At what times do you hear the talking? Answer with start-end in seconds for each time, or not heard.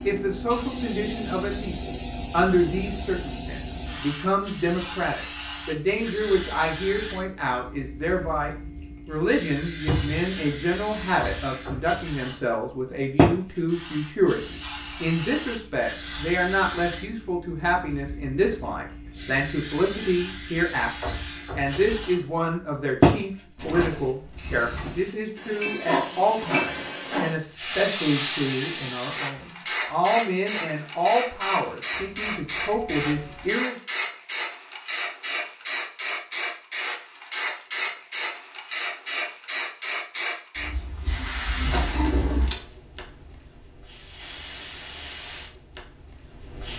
0.0-33.8.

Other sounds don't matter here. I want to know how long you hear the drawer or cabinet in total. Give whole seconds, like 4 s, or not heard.
2 s.